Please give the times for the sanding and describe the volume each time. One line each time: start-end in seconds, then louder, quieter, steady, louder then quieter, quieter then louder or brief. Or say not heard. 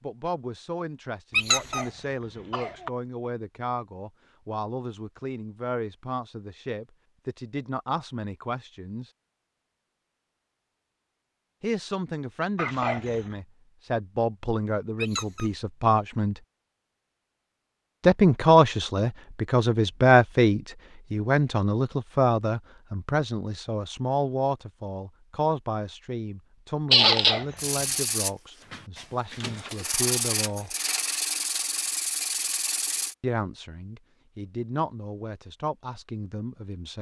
27.6-33.1 quieter then louder.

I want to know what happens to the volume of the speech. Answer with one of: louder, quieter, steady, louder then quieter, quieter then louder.
louder then quieter.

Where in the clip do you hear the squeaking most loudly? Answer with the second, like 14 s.
27 s.